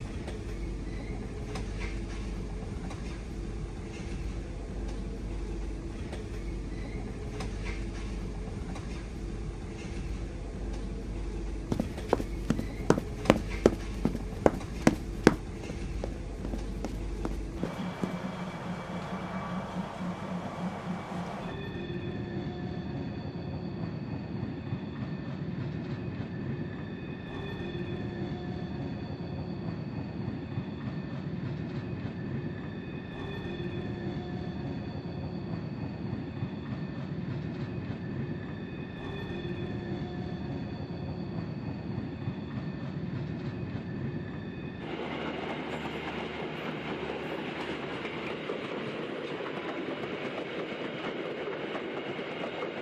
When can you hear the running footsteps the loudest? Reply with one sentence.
The loudest moment of the running footsteps is at 15 seconds.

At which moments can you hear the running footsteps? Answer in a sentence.
The running footsteps can be heard from 11.7 to 18.2 s.